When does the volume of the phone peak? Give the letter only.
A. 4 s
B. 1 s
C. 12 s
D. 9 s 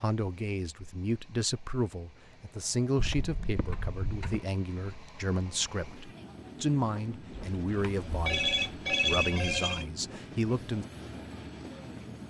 D.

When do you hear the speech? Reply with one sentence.
You can hear the speech from 0.0 to 10.8 s.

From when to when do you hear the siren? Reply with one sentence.
You can't hear the siren here.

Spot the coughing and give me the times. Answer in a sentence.
You can't hear the coughing here.